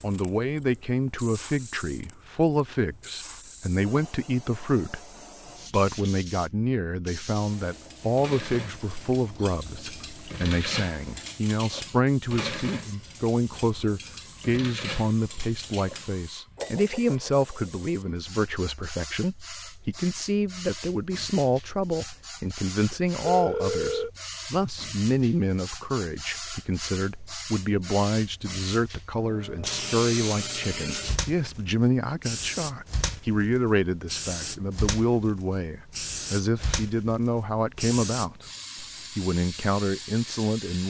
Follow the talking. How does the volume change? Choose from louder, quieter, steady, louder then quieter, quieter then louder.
steady.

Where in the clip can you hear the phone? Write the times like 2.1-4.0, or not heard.
23.2-24.1.